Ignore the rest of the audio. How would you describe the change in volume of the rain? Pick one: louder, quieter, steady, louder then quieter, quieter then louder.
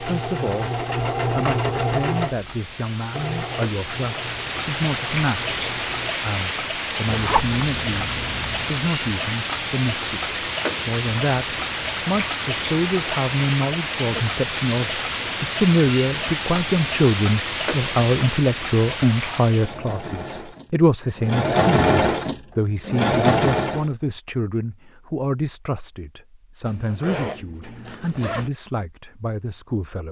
louder.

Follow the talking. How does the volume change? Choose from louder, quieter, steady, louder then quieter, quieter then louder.
louder then quieter.